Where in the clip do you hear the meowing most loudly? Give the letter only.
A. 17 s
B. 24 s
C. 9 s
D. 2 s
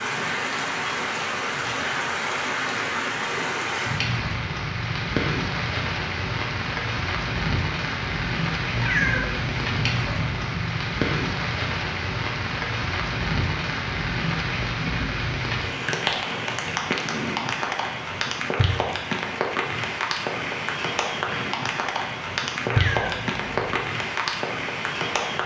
C.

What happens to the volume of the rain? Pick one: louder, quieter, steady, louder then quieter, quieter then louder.
steady.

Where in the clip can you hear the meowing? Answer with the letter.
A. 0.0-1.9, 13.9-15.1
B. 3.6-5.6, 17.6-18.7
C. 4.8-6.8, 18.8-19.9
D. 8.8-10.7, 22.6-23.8
D.